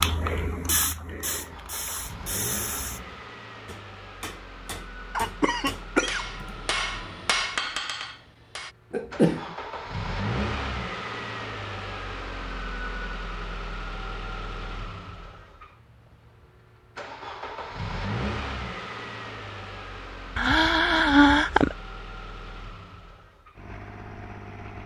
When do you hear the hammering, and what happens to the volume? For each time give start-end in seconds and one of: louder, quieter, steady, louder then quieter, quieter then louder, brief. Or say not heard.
3.6-8.8 louder.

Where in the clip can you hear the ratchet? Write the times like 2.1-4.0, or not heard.
not heard.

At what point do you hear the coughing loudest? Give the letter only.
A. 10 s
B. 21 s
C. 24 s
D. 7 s
B.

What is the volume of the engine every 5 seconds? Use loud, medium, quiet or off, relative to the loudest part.
medium, medium, loud, loud, medium.